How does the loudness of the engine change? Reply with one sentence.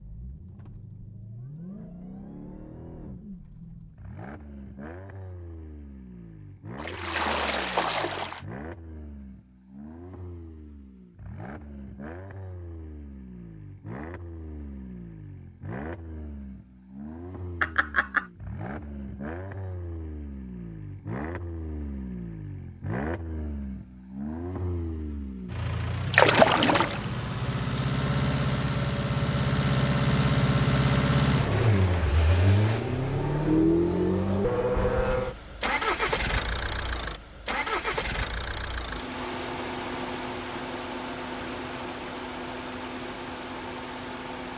The volume of the engine goes up, then down.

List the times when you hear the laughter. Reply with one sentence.
You can hear the laughter from 17.6 to 18.2 s.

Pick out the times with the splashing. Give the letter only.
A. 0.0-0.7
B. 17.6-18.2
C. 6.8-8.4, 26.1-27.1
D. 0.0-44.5
C.